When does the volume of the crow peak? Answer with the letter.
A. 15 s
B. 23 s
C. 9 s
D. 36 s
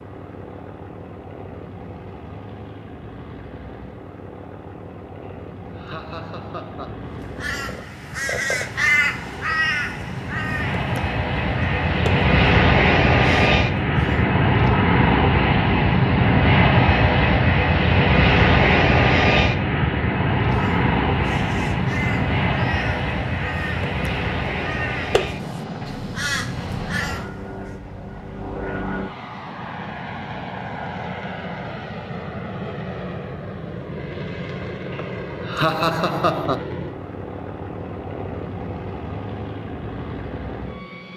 C.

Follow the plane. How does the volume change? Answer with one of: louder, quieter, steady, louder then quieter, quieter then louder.
louder then quieter.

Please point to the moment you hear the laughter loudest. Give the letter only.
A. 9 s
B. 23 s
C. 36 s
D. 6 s
C.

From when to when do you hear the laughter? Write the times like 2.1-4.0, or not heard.
5.2-7.0, 35.0-36.6.